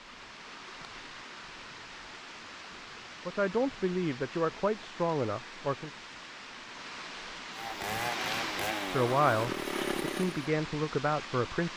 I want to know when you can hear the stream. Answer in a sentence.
The stream can be heard from 0.0 to 11.7 s.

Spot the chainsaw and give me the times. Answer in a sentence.
You can hear the chainsaw from 7.5 to 10.5 s.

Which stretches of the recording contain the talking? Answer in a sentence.
You can hear the talking from 3.2 to 5.9 s and from 8.9 to 11.7 s.